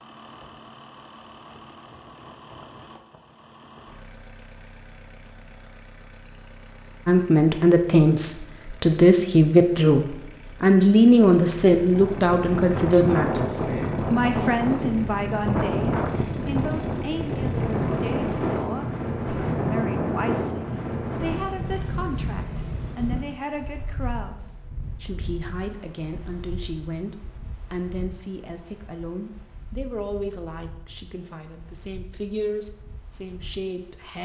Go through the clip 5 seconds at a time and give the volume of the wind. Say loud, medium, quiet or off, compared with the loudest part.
off, off, loud, loud, medium, quiet, quiet.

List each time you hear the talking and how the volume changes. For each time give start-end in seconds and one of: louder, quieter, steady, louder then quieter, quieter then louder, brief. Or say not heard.
7.0-34.1 quieter.